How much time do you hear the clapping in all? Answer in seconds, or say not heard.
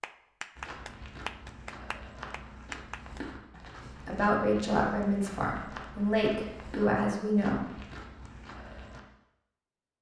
3 s.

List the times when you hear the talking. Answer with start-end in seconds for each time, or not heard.
3.9-7.7.